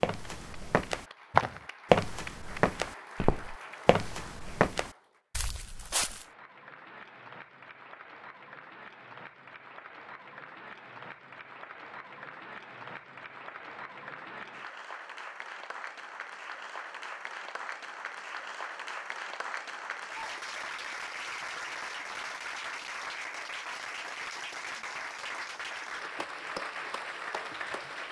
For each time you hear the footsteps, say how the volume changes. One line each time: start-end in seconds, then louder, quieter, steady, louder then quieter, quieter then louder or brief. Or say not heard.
0.0-6.2 quieter.